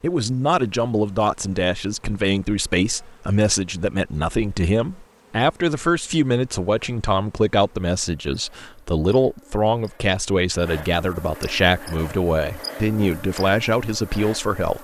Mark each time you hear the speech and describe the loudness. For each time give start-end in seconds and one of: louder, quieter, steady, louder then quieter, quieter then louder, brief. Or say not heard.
0.0-14.7 steady.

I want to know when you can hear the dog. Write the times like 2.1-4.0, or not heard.
not heard.